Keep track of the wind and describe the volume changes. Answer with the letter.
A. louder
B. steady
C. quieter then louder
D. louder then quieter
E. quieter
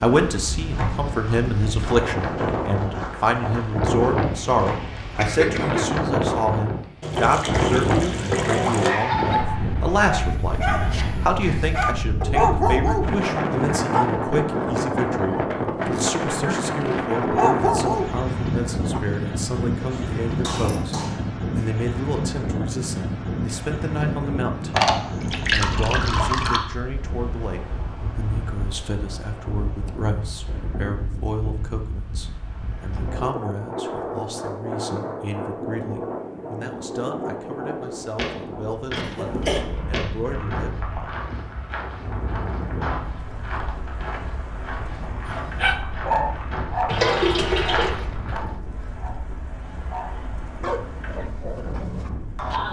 E.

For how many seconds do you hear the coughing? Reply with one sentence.
The coughing can be heard for 3 seconds in total.